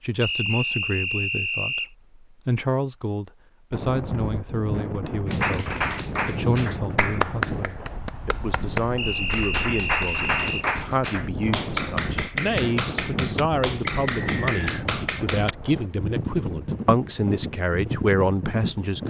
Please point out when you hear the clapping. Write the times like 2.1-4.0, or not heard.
5.2-15.6.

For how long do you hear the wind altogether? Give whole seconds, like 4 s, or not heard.
15 s.